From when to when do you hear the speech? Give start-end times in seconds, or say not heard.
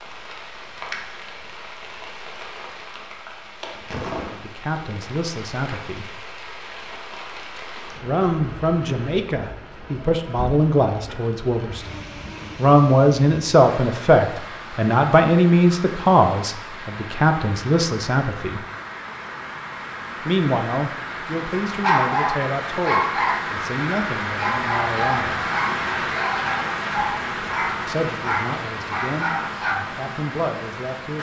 4.3-6.1, 8.0-18.6, 20.2-25.4, 27.9-31.1.